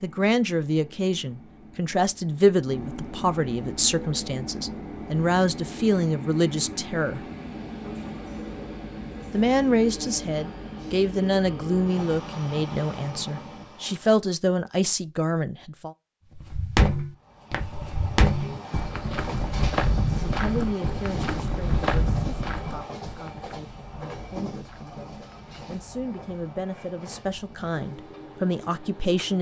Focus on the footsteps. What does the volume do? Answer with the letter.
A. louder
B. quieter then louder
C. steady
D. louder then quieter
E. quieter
E.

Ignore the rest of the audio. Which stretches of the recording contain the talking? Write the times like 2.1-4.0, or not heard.
0.0-7.2, 9.3-15.9, 20.1-29.3.